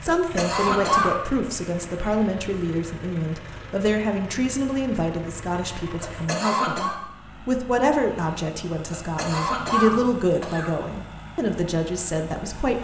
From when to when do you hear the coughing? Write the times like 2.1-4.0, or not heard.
0.1-1.1, 6.0-7.0, 8.9-10.7.